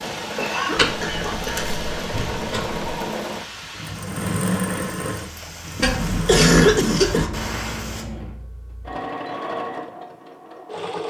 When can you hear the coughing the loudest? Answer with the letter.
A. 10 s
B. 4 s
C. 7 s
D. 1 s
C.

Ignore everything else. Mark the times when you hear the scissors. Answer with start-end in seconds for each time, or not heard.
0.8-3.0, 5.8-7.5.